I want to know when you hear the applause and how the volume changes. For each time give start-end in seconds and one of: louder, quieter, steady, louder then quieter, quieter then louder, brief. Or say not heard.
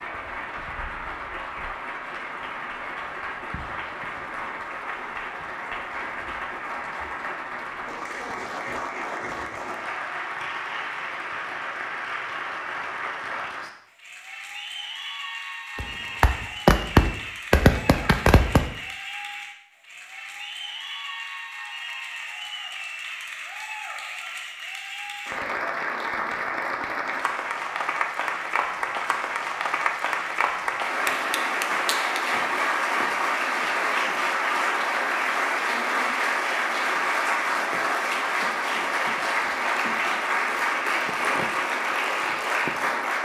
0.0-43.2 louder.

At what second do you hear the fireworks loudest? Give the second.
17 s.